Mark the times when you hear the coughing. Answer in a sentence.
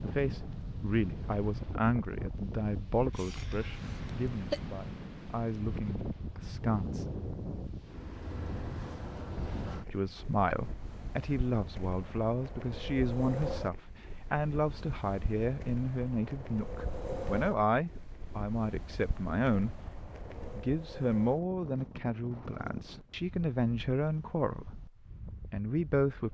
The coughing can be heard from 3.1 to 4.6 s.